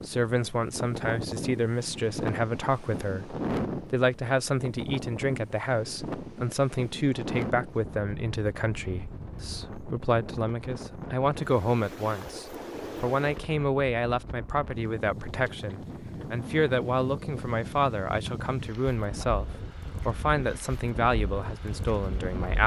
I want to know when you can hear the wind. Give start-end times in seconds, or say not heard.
0.0-22.6.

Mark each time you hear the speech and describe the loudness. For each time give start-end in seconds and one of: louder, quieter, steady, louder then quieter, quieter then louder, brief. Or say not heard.
0.1-22.6 steady.